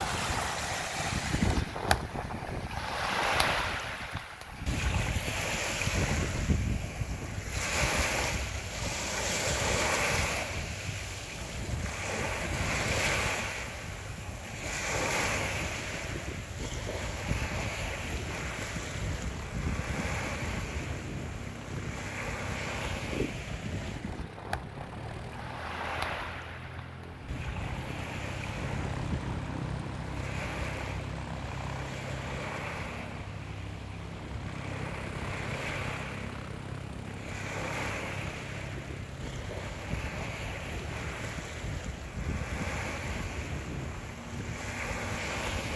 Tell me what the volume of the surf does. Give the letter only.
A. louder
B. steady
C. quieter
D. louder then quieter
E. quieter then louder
C.